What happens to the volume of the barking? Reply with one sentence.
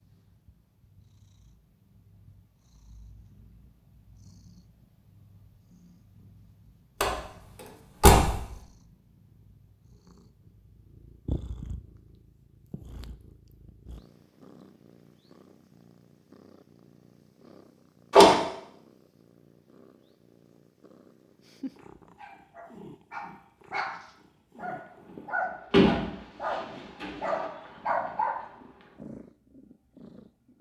The volume of the barking goes up.